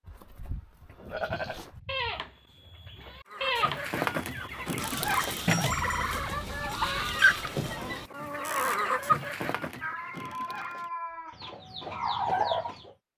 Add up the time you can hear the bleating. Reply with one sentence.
The bleating can be heard for 8 seconds in total.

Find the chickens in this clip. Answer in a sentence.
The chickens can be heard from 3.3 to 12.9 s.